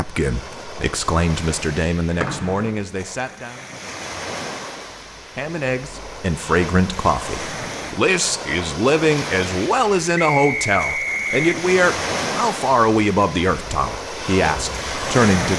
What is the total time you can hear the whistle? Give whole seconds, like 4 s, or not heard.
2 s.